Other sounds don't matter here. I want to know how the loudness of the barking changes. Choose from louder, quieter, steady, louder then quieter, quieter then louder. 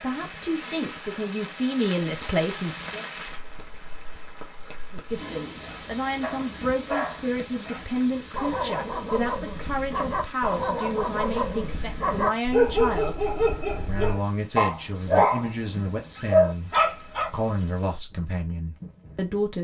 louder.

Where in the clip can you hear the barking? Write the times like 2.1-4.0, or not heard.
5.7-17.3.